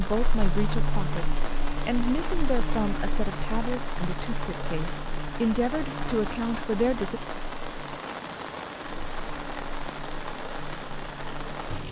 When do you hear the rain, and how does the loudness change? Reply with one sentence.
The rain can be heard from 0.0 to 11.8 s, at a steady volume.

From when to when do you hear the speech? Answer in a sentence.
The speech can be heard from 0.0 to 7.2 s.